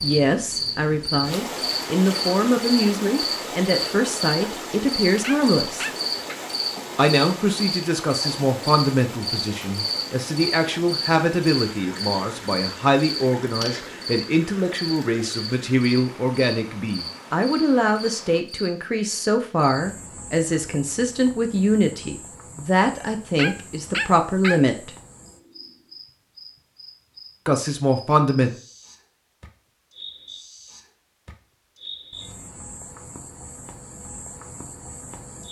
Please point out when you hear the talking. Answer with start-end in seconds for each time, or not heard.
0.0-5.9, 7.0-24.9, 27.4-28.5.